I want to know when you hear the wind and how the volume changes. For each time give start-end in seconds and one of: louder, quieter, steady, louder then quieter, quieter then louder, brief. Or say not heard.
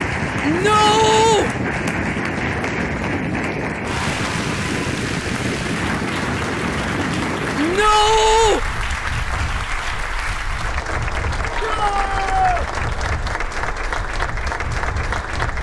0.0-15.5 quieter.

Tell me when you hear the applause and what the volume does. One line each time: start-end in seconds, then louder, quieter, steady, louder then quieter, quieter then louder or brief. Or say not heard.
0.0-15.5 steady.